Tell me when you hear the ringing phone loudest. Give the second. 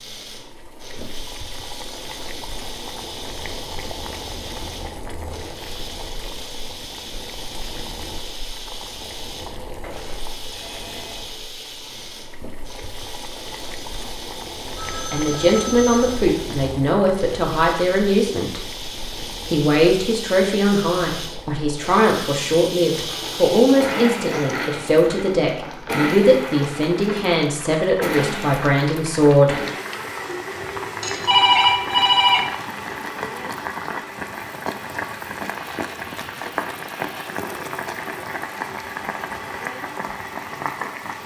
32 s.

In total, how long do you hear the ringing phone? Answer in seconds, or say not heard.
5 s.